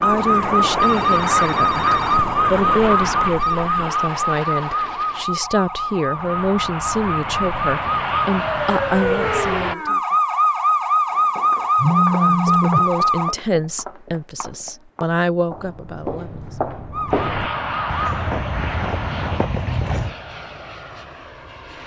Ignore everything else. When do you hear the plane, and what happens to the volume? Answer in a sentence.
The plane can be heard from 0.0 to 9.8 s, getting quieter then louder; and from 17.1 to 21.8 s, getting quieter.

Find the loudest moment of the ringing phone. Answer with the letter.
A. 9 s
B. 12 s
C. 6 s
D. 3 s
B.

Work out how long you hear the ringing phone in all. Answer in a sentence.
You can hear the ringing phone for 4 seconds altogether.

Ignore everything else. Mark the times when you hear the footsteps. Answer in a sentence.
The footsteps can be heard from 11.1 to 20.1 s.